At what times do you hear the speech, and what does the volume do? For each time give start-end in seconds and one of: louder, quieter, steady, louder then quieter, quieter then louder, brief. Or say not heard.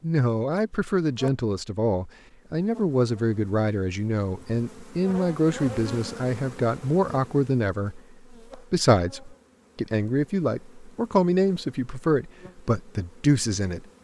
0.0-13.8 steady.